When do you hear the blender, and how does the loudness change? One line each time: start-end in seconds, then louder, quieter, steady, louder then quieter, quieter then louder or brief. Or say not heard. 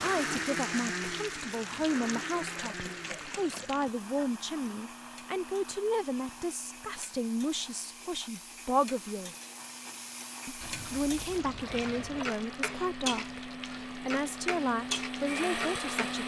0.0-16.2 quieter then louder.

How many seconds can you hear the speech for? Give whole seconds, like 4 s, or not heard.
15 s.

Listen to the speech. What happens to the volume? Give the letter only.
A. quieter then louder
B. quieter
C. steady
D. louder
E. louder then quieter
C.